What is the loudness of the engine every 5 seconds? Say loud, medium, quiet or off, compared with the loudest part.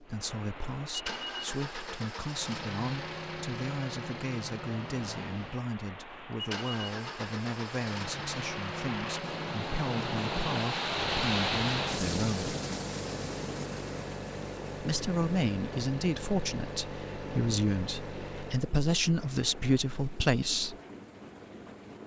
loud, loud, loud, loud, off.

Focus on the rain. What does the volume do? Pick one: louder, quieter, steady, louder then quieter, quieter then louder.
louder then quieter.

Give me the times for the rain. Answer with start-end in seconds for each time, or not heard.
0.0-22.0.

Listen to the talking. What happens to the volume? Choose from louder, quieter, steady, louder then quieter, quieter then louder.
louder.